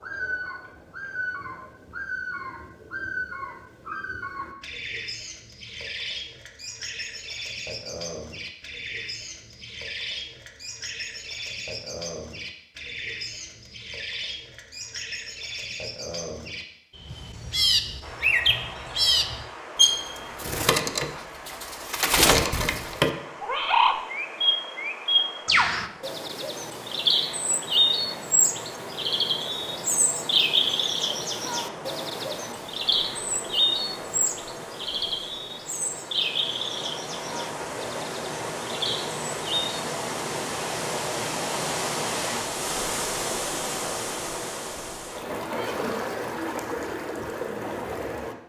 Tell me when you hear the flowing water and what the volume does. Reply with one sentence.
You can hear the flowing water from 18.0 to 48.4 s, getting louder.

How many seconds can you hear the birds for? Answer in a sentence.
The birds can be heard for 40 seconds in total.